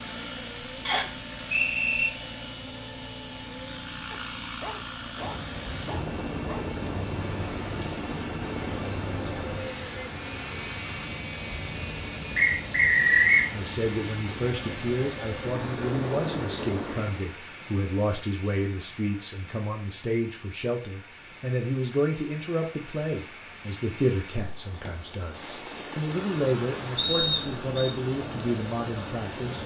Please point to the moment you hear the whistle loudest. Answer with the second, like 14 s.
13 s.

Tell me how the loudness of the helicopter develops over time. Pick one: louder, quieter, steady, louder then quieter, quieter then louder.
steady.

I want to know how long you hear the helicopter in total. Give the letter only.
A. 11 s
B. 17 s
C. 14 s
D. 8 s
B.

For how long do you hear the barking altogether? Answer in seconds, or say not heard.
3 s.